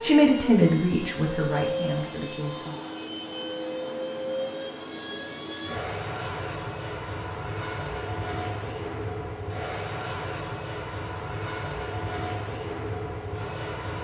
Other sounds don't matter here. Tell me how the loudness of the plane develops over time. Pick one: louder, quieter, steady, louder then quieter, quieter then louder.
steady.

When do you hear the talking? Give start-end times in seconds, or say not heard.
0.0-2.8.